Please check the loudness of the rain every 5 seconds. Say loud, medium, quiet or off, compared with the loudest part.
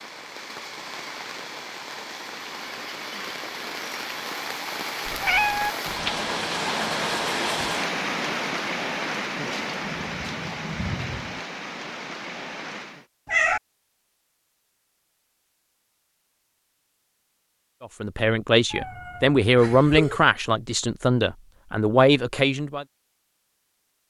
medium, loud, medium, off, off.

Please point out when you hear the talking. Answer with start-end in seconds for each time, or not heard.
17.8-22.9.